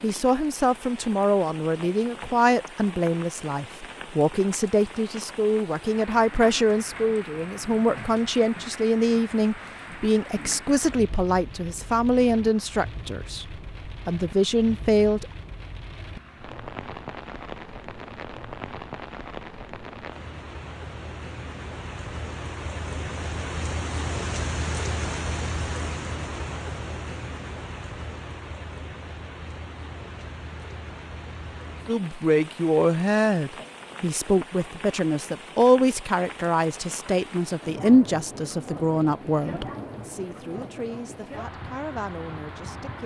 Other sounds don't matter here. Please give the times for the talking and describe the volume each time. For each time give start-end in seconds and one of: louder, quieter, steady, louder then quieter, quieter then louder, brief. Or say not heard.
0.0-15.2 steady
31.9-43.0 quieter.